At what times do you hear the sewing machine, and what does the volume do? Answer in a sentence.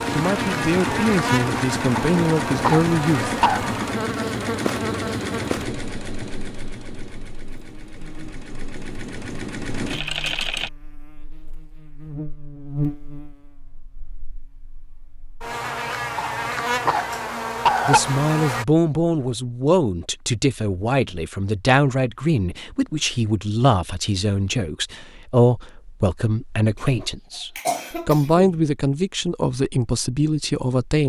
The sewing machine can be heard from 0.0 to 10.7 s, getting quieter then louder.